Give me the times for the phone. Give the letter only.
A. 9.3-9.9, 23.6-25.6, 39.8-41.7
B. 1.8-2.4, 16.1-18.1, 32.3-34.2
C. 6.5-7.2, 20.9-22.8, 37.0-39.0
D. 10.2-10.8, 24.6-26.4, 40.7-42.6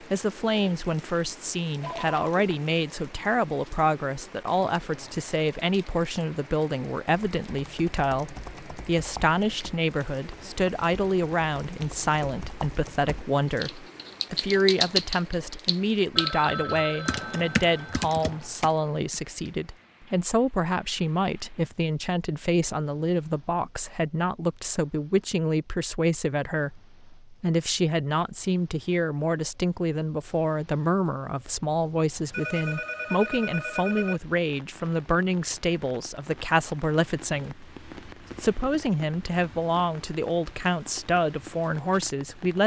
B.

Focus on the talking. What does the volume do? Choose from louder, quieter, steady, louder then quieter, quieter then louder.
steady.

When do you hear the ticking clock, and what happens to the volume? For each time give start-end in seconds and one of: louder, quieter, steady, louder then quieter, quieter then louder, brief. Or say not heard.
not heard.